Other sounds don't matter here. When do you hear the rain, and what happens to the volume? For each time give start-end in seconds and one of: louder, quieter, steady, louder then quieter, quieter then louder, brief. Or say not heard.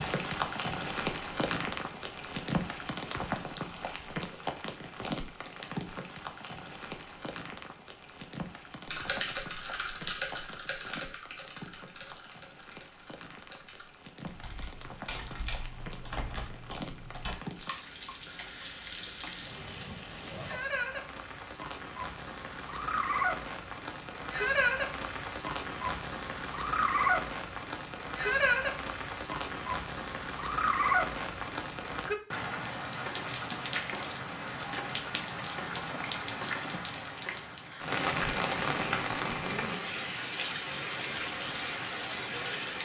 0.0-42.8 quieter then louder.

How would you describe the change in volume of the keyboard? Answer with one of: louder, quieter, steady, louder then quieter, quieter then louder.
quieter then louder.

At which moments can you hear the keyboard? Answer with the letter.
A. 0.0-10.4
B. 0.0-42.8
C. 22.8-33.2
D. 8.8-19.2
D.